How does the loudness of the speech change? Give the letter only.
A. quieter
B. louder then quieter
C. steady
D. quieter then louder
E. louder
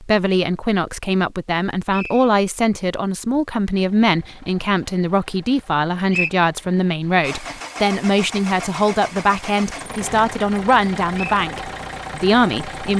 C.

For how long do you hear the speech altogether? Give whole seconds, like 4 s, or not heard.
13 s.